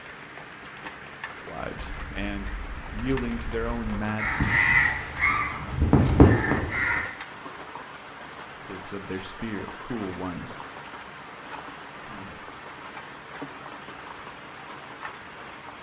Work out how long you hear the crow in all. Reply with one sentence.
You can hear the crow for 5 seconds altogether.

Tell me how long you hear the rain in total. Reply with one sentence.
The rain can be heard for 16 seconds in total.